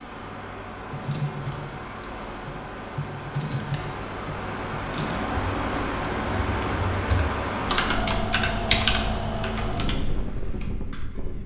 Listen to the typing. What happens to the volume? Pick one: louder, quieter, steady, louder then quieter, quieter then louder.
louder then quieter.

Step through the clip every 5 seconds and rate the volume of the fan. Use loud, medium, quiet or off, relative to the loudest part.
medium, loud, medium.